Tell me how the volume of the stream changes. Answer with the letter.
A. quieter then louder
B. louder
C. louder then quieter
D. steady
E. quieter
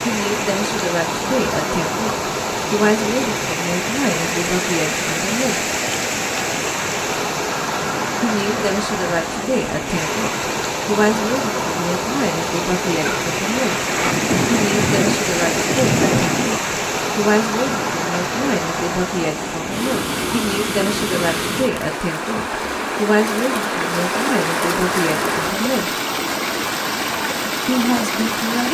D.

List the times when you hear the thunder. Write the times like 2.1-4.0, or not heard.
13.1-16.5.